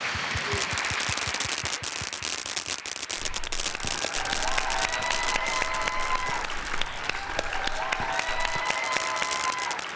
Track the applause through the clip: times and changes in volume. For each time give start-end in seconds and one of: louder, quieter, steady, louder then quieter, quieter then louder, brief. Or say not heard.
0.0-9.9 quieter then louder.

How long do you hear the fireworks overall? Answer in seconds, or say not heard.
10 s.